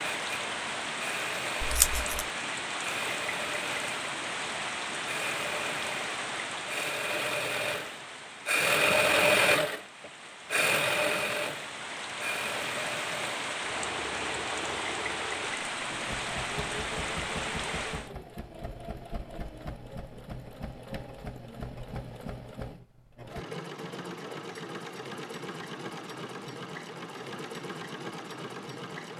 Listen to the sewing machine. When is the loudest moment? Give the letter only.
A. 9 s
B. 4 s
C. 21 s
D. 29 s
A.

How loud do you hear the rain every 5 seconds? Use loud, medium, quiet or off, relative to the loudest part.
loud, loud, loud, loud, off, off.